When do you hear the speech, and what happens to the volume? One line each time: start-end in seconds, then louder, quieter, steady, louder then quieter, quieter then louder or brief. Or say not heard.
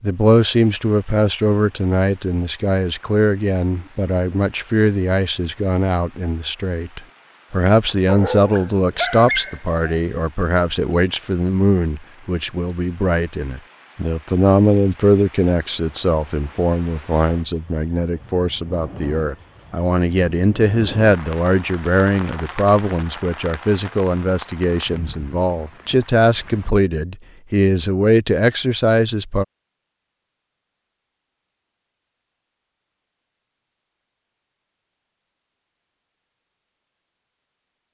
0.0-29.4 steady.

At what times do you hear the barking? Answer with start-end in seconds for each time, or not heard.
8.1-10.0.